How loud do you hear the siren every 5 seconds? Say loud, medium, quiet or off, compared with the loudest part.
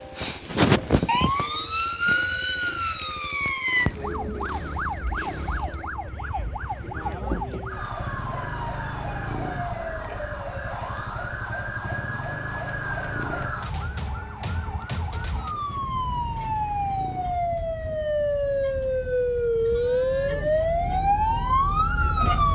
loud, medium, medium, loud, loud.